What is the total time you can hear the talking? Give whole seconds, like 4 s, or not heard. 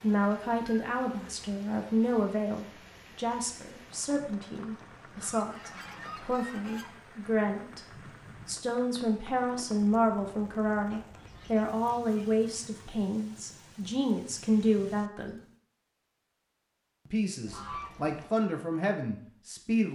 18 s.